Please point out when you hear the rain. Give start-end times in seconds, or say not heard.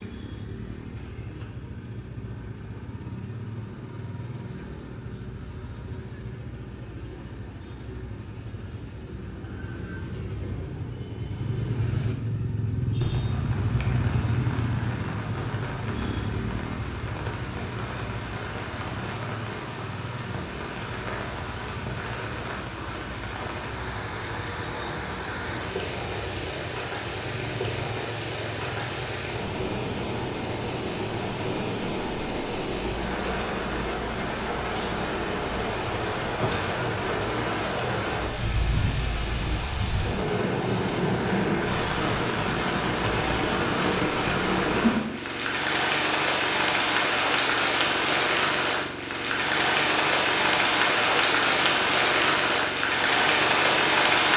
12.9-54.3.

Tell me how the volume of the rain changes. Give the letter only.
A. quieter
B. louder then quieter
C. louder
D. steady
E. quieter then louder
C.